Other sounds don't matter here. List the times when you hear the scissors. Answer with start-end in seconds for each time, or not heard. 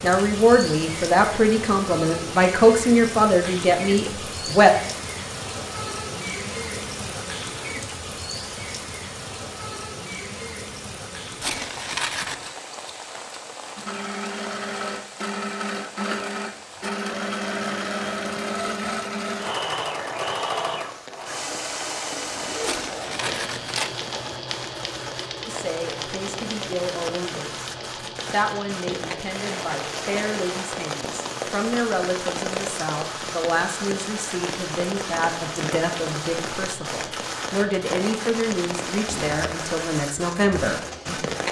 11.4-12.6, 22.6-24.0.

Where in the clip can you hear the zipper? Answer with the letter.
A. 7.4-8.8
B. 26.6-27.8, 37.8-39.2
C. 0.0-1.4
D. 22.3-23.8
D.